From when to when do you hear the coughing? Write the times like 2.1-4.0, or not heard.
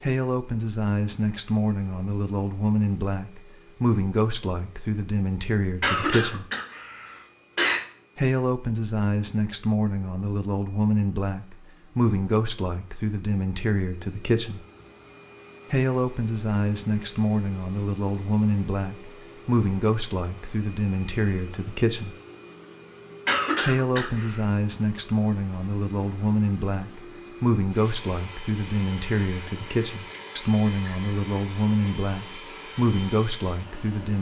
5.8-7.8, 23.2-24.4.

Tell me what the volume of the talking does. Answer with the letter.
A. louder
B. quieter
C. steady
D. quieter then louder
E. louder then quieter
C.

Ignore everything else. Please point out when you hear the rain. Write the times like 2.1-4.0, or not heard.
not heard.